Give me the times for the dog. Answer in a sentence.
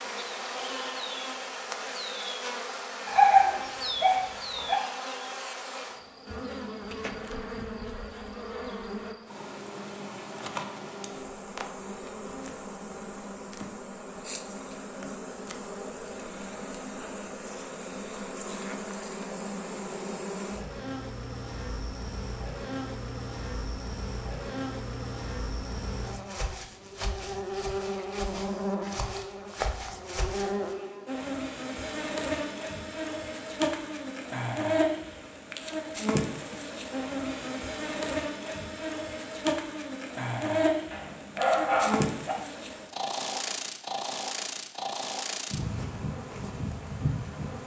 The dog can be heard from 3.0 to 4.8 s and from 40.9 to 42.4 s.